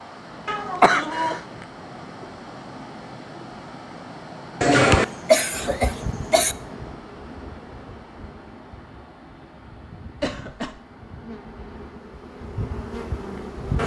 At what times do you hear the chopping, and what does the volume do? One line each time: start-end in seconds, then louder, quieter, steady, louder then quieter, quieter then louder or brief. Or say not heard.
not heard.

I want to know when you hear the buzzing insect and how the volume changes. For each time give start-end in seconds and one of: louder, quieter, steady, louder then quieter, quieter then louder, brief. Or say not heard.
5.5-13.8 quieter then louder.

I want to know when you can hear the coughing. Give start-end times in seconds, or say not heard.
0.5-1.4, 4.6-6.5, 10.2-10.8.